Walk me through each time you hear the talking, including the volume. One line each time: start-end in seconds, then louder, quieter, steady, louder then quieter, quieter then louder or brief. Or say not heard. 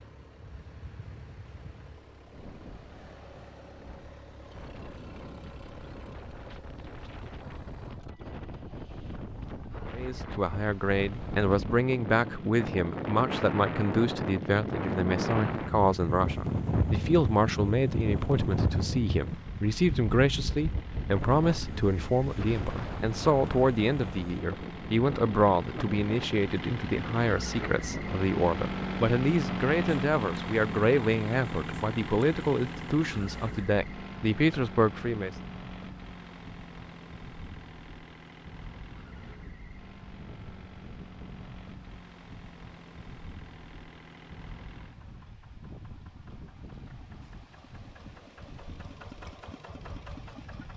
9.9-35.4 steady.